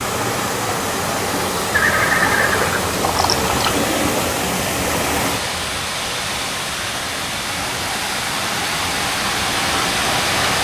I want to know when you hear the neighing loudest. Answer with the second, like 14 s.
2 s.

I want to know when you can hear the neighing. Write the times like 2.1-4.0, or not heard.
1.7-3.8.